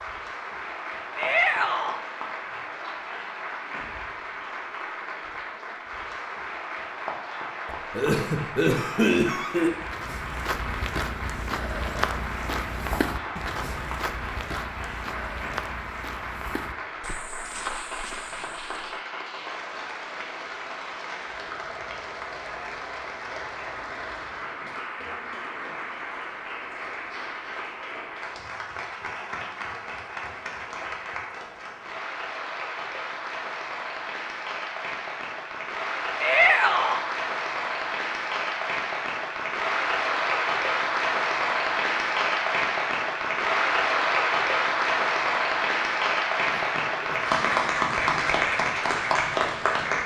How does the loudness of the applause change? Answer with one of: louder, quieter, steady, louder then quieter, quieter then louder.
louder.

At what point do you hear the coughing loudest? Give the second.
9 s.